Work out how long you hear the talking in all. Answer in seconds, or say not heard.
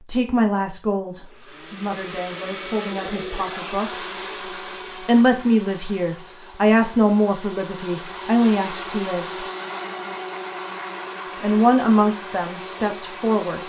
11 s.